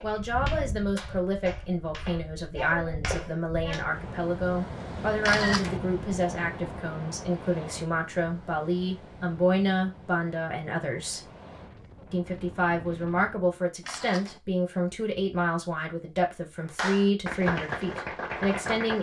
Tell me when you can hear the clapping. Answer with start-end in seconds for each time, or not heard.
0.0-3.9, 16.8-18.9.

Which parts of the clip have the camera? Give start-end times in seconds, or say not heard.
5.2-5.8, 13.8-14.4.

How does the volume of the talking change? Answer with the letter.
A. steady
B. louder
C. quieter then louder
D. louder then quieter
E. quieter
A.